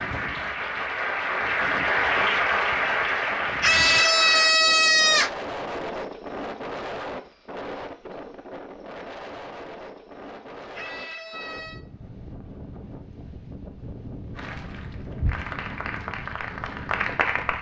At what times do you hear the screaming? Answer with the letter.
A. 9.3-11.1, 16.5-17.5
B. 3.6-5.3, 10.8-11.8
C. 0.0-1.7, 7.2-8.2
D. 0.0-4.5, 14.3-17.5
B.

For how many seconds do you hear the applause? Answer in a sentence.
You can hear the applause for 8 seconds altogether.